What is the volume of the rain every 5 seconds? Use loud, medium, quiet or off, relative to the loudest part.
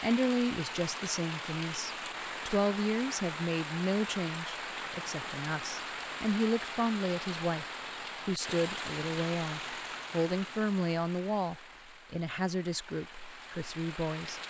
loud, loud, medium.